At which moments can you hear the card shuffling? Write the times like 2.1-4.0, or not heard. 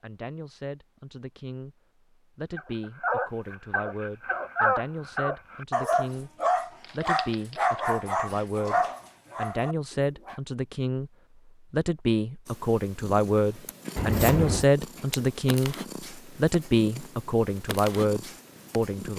6.8-7.8, 13.9-14.7.